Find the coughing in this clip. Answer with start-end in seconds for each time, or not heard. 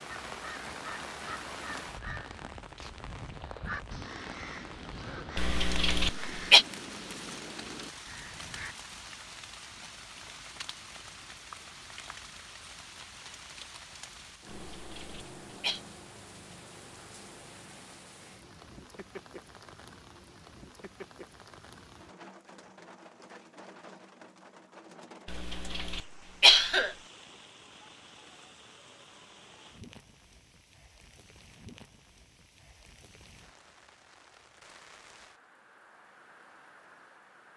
5.3-6.7, 14.7-15.8, 25.2-26.9.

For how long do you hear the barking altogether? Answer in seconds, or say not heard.
not heard.